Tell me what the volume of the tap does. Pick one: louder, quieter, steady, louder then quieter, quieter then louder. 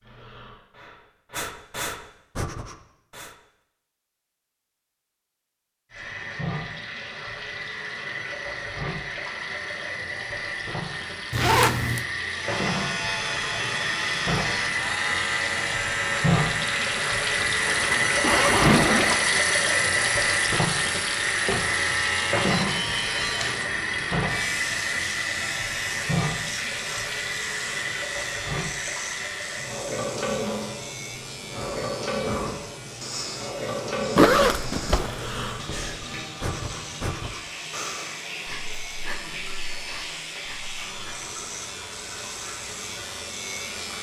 louder then quieter.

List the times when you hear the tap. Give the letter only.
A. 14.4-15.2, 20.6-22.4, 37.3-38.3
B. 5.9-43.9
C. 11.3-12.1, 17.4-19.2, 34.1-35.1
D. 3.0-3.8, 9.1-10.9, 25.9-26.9
B.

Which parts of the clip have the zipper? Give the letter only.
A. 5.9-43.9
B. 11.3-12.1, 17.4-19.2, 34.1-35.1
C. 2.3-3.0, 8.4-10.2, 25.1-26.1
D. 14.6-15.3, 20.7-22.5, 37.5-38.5
B.